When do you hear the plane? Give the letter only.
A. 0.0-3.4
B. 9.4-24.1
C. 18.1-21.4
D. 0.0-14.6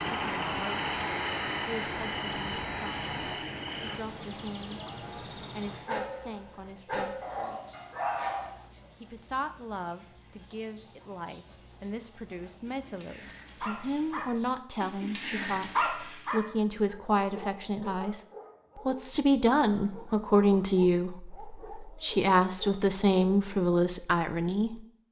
A.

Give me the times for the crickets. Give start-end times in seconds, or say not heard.
0.0-14.6.